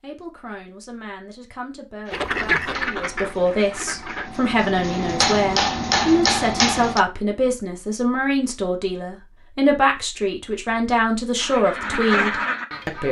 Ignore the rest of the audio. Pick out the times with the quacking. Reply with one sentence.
The quacking can be heard from 2.1 to 4.3 s and from 11.3 to 13.0 s.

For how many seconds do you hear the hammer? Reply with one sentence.
You can hear the hammer for 5 seconds altogether.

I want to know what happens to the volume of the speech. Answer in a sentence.
The volume of the speech goes up.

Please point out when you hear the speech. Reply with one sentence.
The speech can be heard from 0.0 to 13.0 s.